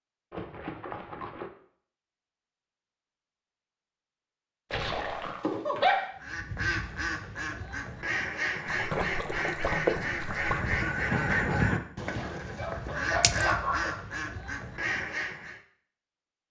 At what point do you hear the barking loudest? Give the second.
6 s.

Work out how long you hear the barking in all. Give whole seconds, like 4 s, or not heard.
3 s.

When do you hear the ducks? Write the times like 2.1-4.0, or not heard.
6.2-15.6.